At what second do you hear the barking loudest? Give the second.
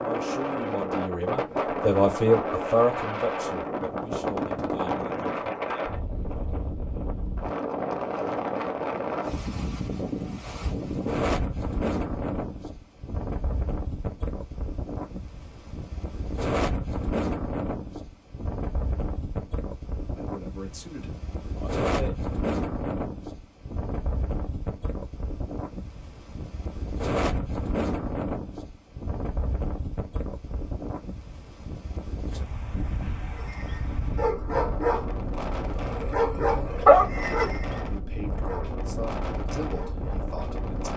37 s.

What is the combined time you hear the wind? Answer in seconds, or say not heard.
41 s.